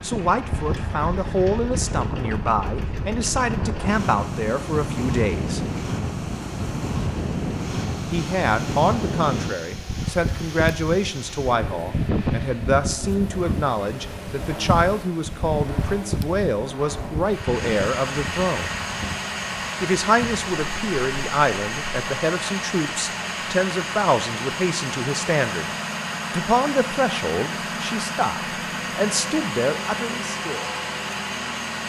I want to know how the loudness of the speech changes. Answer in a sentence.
The volume of the speech stays about the same.